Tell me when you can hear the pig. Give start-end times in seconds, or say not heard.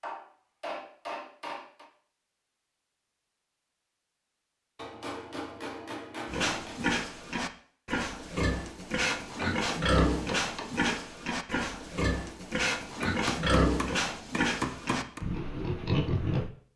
6.2-16.5.